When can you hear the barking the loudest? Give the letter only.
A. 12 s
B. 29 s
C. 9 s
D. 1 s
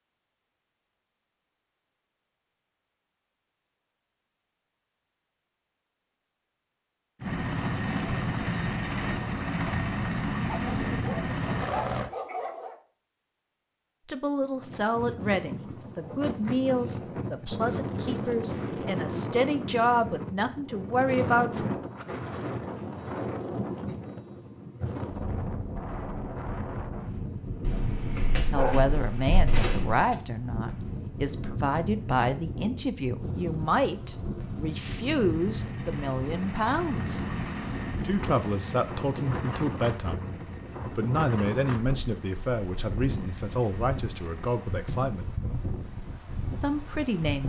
B.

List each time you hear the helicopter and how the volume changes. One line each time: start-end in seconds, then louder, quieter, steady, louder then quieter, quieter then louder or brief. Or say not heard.
7.2-12.1 steady
33.1-44.9 louder then quieter.